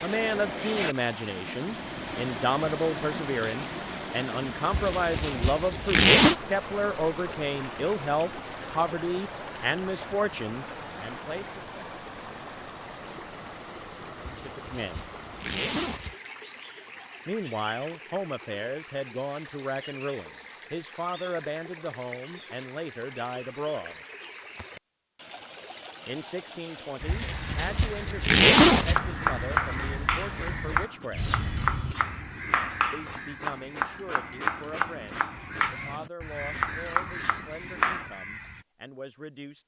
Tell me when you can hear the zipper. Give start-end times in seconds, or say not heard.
4.7-6.3, 14.2-16.1, 27.1-29.0.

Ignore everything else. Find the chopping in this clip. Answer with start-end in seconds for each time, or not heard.
28.8-38.1.